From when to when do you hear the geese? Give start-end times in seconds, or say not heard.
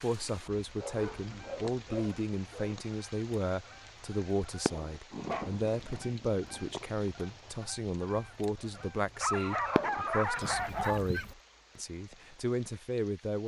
1.1-11.3.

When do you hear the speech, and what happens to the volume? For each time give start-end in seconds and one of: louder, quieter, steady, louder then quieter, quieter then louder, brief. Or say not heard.
0.0-13.4 steady.